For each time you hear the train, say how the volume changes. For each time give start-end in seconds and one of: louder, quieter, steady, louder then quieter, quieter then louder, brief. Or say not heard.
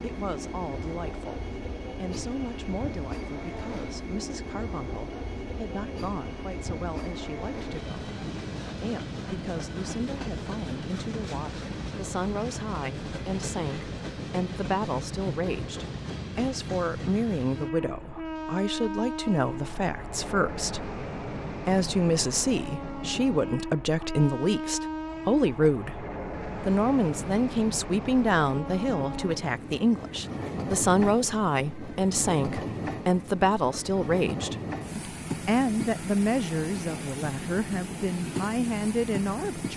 0.0-39.7 steady.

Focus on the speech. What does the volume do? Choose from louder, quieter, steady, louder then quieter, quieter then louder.
louder.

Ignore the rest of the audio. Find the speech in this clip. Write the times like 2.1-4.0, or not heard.
0.0-26.1, 26.6-39.7.